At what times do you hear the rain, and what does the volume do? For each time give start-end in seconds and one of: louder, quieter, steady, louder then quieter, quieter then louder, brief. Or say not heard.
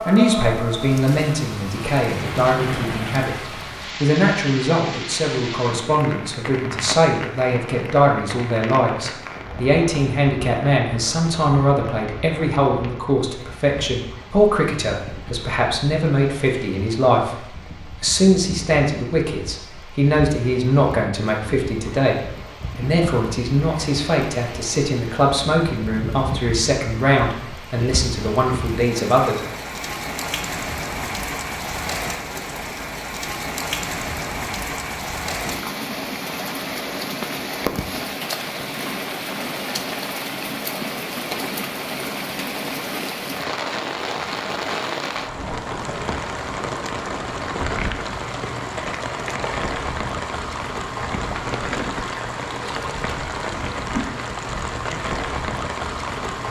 0.0-56.4 quieter then louder.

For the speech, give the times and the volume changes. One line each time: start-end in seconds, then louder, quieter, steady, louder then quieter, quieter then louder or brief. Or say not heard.
0.0-29.4 steady.